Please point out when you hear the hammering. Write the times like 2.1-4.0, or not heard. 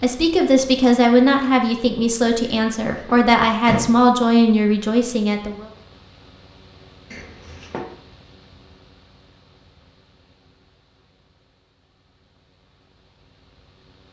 not heard.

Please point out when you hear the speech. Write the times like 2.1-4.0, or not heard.
0.0-5.7.